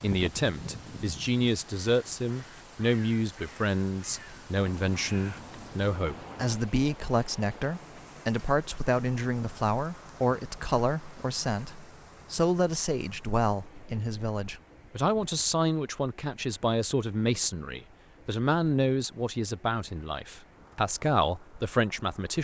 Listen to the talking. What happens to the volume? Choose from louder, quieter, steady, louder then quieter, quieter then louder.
steady.